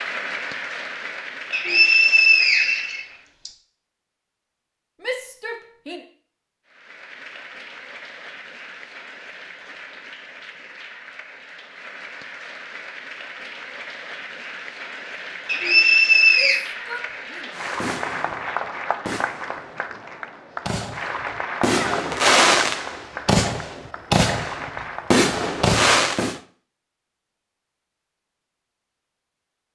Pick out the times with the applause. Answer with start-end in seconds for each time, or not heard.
0.0-3.4, 6.7-25.3.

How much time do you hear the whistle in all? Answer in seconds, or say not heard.
3 s.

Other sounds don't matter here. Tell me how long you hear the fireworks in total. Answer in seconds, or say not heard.
9 s.